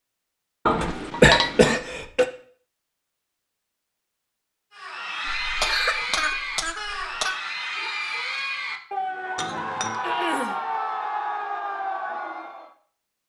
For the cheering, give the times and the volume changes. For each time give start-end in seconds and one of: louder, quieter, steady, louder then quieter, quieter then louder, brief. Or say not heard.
4.7-12.8 steady.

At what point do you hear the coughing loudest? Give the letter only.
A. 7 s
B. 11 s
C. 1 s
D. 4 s
C.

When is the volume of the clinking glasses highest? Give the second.
1 s.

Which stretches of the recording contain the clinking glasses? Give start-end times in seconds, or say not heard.
0.7-1.7, 9.3-10.0.